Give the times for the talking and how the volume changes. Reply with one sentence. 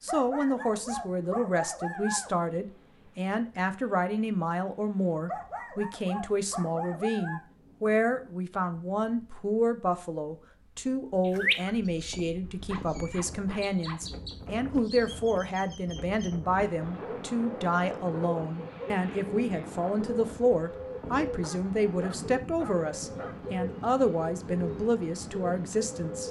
You can hear the talking from 0.0 to 26.2 s, at a steady volume.